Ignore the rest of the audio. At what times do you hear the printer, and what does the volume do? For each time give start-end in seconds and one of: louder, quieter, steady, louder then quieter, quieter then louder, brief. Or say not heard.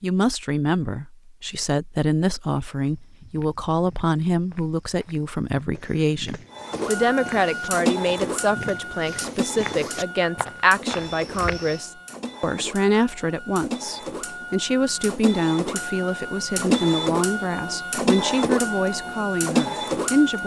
6.5-20.4 quieter then louder.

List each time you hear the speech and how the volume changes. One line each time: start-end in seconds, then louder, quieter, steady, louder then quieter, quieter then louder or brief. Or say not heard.
0.0-20.4 steady.